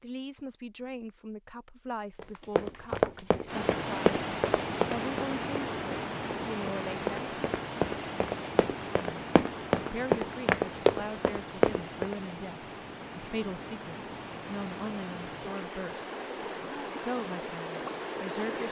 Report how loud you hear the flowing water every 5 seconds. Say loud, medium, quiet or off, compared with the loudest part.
loud, loud, medium, loud.